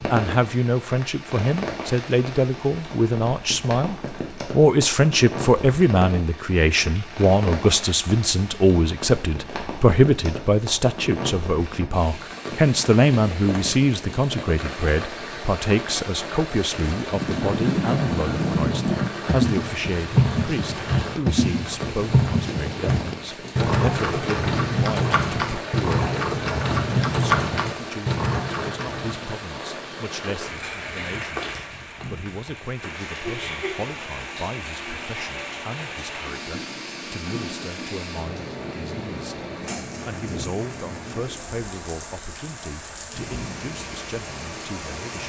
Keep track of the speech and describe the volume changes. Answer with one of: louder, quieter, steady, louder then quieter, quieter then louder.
quieter.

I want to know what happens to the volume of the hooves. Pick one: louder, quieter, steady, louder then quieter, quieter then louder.
steady.